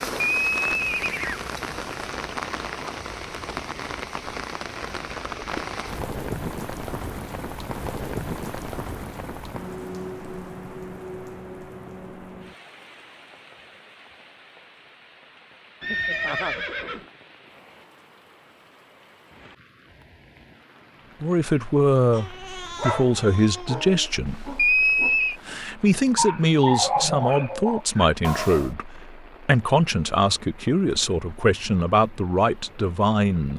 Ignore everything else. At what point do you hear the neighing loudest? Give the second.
25 s.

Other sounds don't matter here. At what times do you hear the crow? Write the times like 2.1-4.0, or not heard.
not heard.